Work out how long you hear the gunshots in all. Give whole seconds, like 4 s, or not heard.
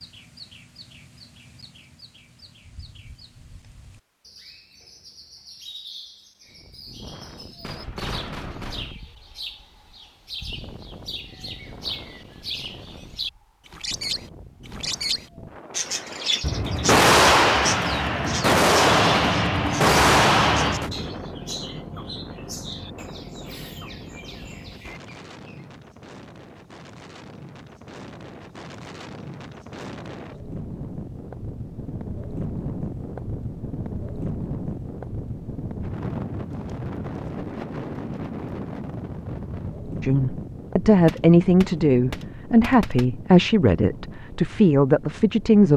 8 s.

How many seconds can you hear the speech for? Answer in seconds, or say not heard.
6 s.